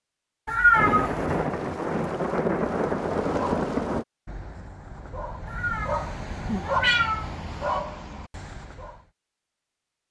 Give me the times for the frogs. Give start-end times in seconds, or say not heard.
not heard.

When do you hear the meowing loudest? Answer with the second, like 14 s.
1 s.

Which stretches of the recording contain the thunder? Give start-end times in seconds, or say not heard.
0.7-4.0.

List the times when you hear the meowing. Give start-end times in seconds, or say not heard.
0.5-1.4, 5.5-7.8.